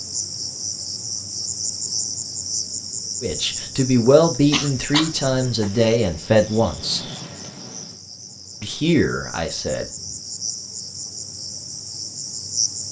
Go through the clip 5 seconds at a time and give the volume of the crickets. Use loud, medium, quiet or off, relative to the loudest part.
loud, medium, loud.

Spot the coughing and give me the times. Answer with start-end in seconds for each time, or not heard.
4.5-5.1.